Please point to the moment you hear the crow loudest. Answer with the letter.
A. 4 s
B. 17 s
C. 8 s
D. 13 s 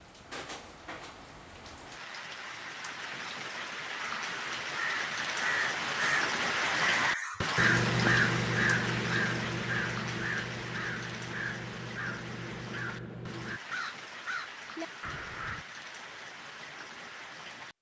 C.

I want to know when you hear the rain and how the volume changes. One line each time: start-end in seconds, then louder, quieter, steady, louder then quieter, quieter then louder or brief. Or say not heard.
0.0-17.7 louder then quieter.